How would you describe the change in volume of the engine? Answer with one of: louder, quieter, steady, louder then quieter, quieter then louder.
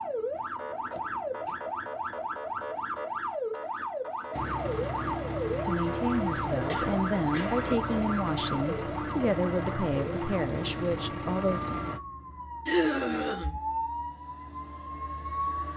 steady.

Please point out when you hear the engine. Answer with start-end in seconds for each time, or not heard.
4.3-12.0.